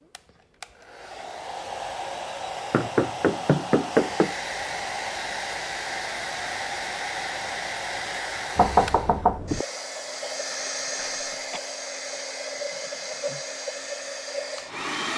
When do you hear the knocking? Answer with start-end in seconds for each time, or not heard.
2.7-4.3, 8.6-9.7.